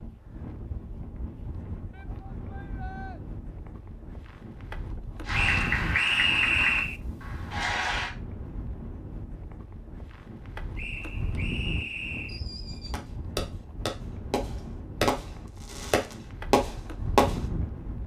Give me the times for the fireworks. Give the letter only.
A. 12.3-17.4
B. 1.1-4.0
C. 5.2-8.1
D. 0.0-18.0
A.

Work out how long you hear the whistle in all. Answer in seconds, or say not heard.
3 s.